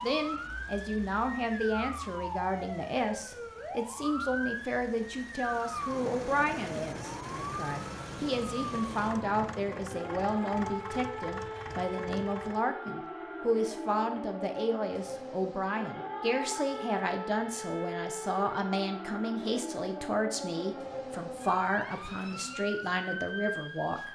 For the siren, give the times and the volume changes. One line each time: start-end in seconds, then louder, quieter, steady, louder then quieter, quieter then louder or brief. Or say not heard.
0.0-24.1 steady.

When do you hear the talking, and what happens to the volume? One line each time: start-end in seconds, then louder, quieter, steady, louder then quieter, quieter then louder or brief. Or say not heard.
0.0-24.1 steady.